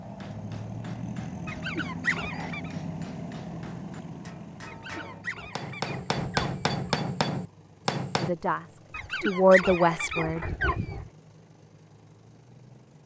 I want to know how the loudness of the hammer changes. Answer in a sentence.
The loudness of the hammer goes up.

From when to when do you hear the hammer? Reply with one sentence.
The hammer can be heard from 0.0 to 8.3 s.